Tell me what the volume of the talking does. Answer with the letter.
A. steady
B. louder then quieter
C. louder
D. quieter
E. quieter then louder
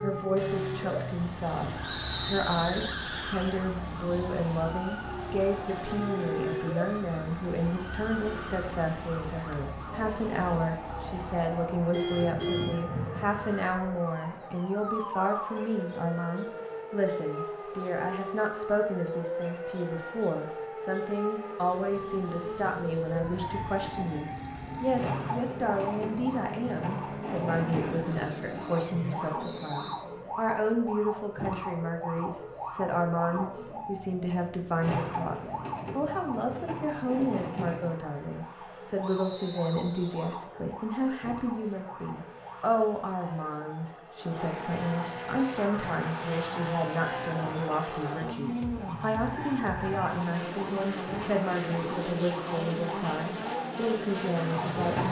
A.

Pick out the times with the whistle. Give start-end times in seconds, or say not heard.
1.9-3.1, 29.4-30.1, 39.0-40.4.